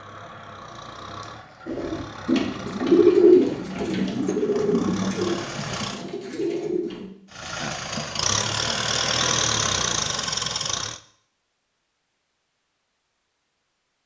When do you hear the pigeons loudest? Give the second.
3 s.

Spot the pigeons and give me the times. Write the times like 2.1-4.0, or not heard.
1.6-7.0.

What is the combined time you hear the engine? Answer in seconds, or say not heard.
10 s.